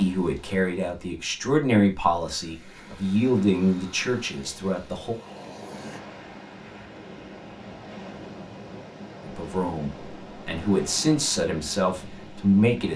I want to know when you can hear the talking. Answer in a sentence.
You can hear the talking from 0.0 to 5.2 s and from 9.2 to 12.9 s.